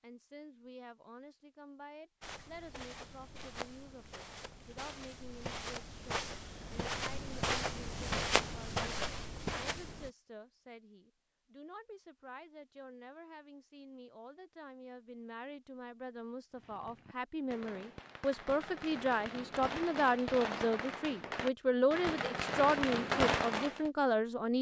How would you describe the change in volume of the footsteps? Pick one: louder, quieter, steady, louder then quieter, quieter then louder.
louder.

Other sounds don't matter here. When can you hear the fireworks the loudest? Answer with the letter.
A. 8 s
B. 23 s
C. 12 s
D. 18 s
B.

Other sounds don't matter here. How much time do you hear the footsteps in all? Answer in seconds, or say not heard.
8 s.